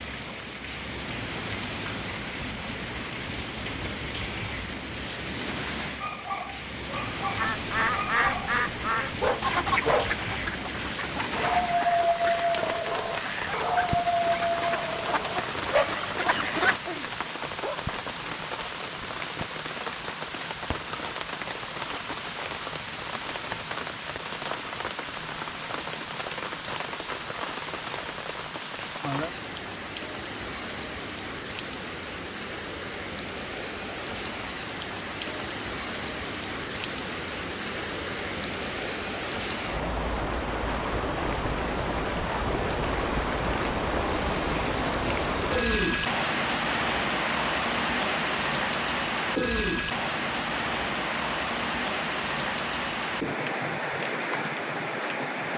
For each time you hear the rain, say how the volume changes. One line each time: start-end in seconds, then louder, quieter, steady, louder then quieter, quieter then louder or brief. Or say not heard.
0.0-55.5 louder.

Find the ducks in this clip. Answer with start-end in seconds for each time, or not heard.
7.3-16.8.